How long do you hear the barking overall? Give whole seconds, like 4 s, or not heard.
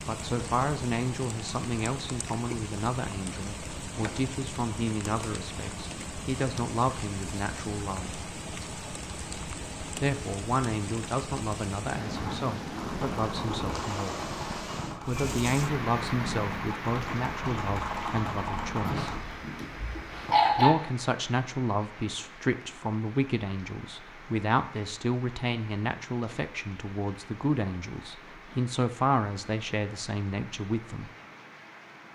2 s.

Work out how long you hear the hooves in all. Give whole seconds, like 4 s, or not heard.
7 s.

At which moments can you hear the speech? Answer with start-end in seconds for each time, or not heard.
0.1-8.2, 9.9-14.3, 15.1-19.1, 20.6-31.1.